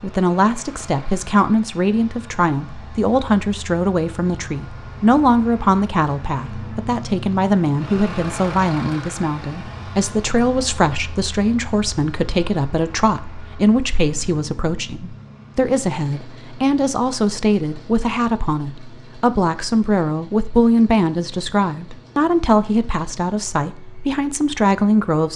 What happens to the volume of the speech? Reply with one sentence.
The volume of the speech stays about the same.